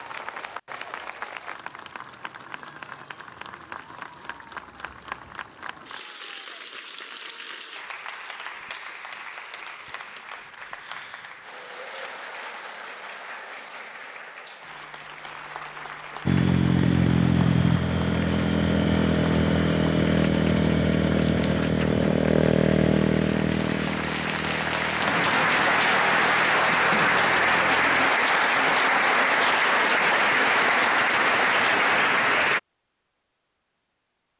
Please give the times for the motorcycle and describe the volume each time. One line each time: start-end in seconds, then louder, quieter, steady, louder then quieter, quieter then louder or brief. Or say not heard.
16.2-28.1 quieter.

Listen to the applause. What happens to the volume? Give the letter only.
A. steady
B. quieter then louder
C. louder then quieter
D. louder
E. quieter
D.